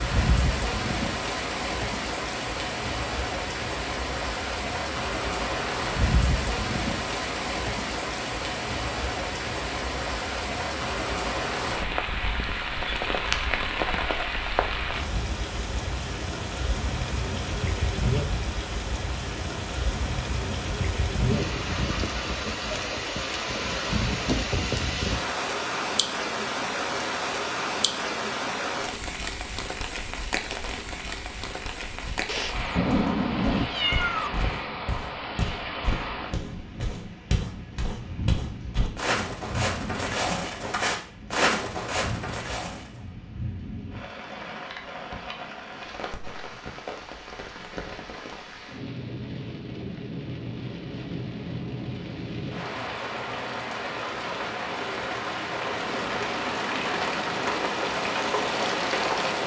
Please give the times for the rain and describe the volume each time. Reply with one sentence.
The rain can be heard from 0.0 to 59.4 s, getting quieter then louder.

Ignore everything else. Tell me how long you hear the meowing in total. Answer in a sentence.
The meowing can be heard for 2 seconds in total.